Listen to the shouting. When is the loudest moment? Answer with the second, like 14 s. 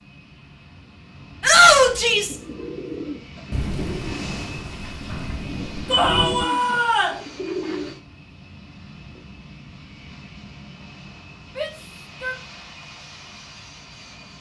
2 s.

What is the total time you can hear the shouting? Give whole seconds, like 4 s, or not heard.
3 s.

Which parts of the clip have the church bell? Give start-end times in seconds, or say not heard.
not heard.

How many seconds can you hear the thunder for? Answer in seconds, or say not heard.
3 s.